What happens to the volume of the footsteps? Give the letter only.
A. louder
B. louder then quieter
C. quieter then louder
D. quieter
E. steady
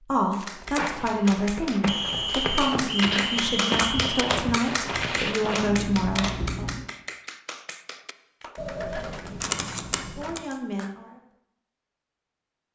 A.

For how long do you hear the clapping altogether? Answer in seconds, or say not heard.
11 s.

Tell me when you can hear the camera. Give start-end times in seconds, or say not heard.
0.3-1.4, 5.7-6.9, 8.6-10.4.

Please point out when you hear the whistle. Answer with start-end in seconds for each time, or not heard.
1.9-4.2.